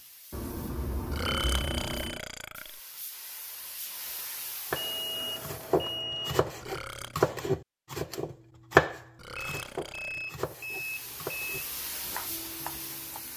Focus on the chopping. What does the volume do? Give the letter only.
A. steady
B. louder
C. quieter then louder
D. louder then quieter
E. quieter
D.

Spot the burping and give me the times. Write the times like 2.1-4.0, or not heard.
1.1-2.8, 6.6-7.2, 9.2-10.3.